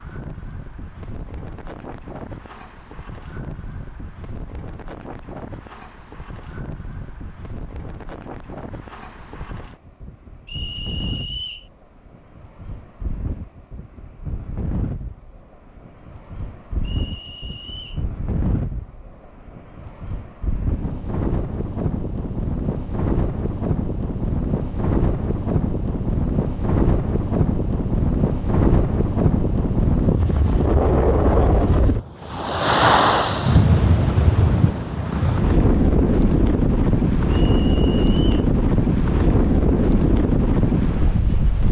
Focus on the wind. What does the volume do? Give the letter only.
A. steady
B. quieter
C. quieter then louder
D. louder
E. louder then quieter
D.